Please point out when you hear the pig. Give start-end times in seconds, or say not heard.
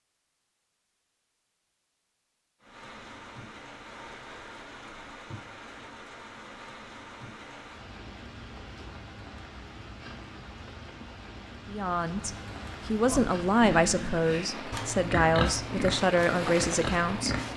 13.1-17.5.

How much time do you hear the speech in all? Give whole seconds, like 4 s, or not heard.
6 s.